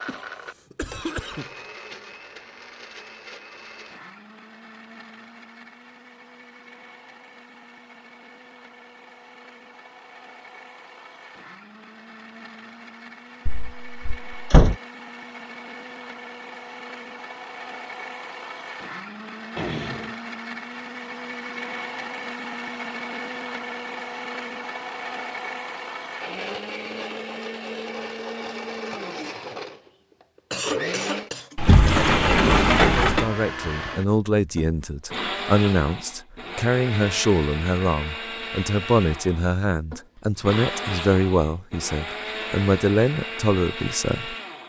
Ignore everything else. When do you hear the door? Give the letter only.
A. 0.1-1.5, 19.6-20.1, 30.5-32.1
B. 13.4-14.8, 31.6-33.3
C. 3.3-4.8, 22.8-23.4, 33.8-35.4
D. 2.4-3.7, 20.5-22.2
B.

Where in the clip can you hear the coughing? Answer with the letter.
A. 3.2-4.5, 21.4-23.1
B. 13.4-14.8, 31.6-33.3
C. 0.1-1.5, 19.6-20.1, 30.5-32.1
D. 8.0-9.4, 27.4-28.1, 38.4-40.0
C.